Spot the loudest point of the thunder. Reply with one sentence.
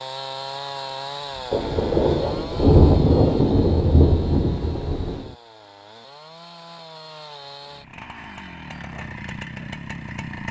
The loudest moment of the thunder is at 3 seconds.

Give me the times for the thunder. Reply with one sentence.
The thunder can be heard from 1.5 to 5.3 s.